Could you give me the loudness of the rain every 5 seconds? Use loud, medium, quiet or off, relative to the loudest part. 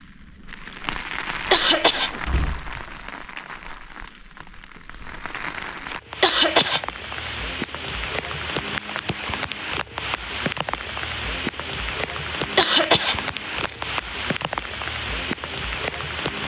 medium, loud, loud, loud.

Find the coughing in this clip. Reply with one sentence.
You can hear the coughing from 1.5 to 2.1 s, from 6.2 to 7.9 s and from 12.6 to 13.9 s.